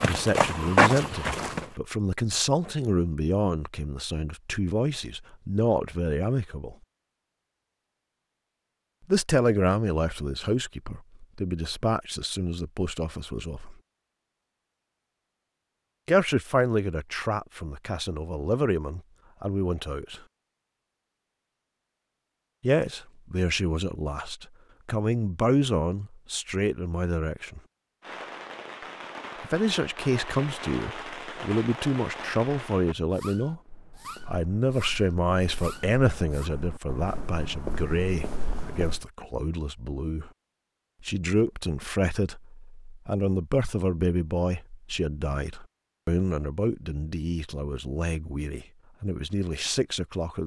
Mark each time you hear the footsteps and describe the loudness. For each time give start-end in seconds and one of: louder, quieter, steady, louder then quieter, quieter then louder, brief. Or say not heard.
0.0-1.7 brief
33.5-39.0 louder.